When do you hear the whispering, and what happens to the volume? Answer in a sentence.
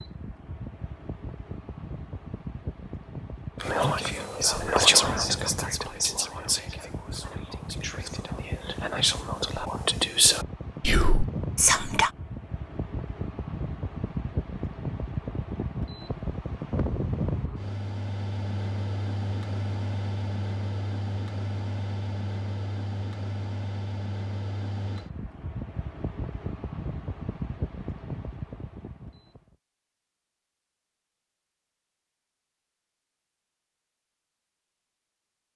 You can hear the whispering from 3.6 to 12.1 s, getting quieter then louder.